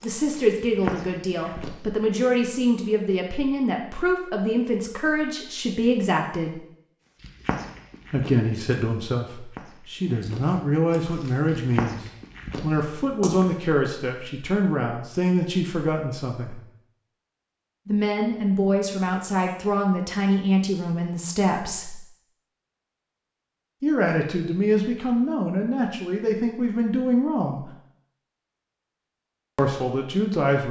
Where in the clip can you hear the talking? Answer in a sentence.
You can hear the talking from 0.0 to 6.6 s, from 8.1 to 16.6 s, from 17.9 to 22.0 s, from 23.8 to 27.6 s and from 29.6 to 30.6 s.